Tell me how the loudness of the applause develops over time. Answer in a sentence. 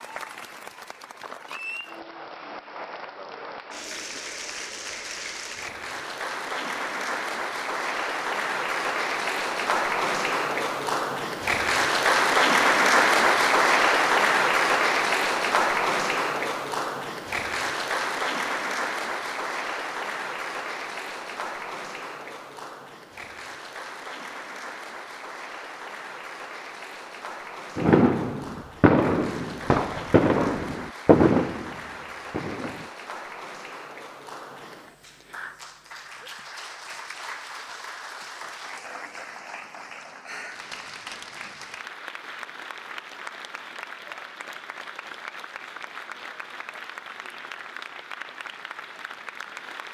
The volume of the applause goes up, then down.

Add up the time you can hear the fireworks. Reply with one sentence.
You can hear the fireworks for 5 seconds altogether.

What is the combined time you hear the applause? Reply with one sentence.
The applause can be heard for 50 seconds in total.